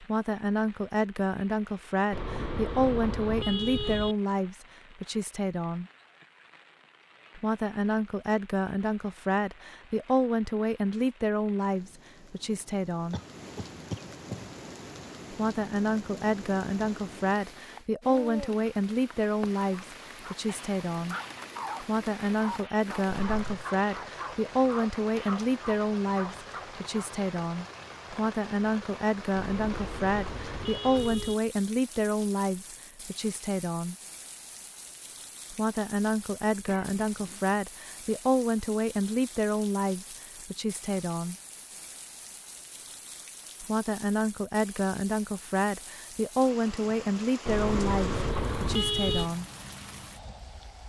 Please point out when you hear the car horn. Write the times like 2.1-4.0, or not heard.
2.1-4.2, 29.4-31.4, 47.5-49.3.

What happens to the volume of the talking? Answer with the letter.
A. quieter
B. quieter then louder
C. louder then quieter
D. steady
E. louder
D.